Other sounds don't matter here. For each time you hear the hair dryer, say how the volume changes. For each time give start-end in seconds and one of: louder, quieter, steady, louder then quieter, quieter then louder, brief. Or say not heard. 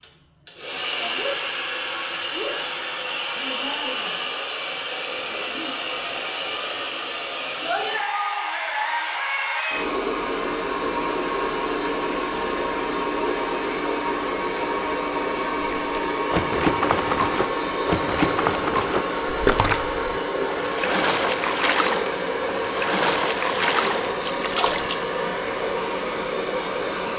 0.0-27.1 steady.